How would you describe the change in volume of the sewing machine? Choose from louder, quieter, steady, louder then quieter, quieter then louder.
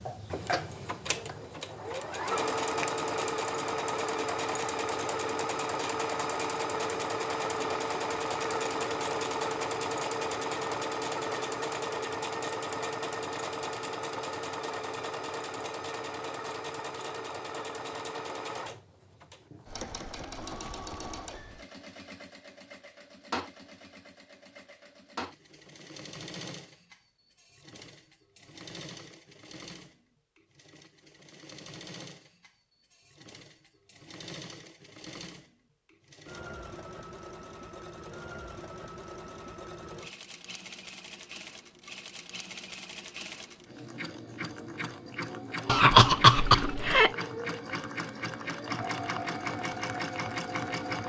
quieter then louder.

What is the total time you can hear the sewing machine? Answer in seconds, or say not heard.
51 s.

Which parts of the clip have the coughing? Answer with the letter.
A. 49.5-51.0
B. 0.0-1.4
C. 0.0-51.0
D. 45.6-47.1
D.